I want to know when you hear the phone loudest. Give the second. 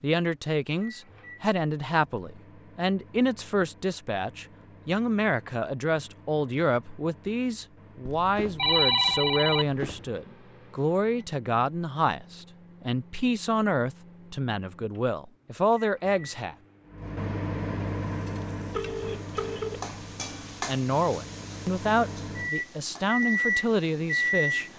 9 s.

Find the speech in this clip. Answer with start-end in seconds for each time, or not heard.
0.0-16.6, 20.6-24.6.